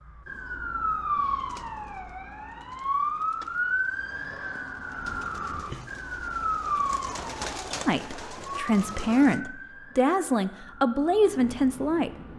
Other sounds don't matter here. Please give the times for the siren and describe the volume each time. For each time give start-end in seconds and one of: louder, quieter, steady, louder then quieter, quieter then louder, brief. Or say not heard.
0.0-12.3 quieter.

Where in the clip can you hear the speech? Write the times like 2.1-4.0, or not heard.
7.8-12.1.